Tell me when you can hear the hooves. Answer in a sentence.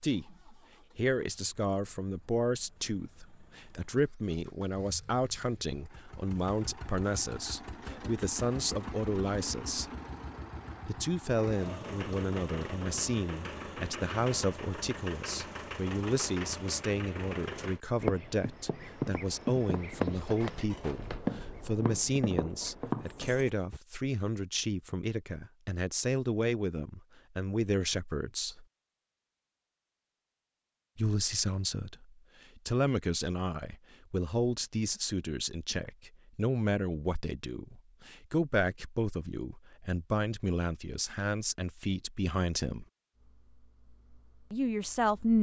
The hooves can be heard from 17.9 to 23.8 s.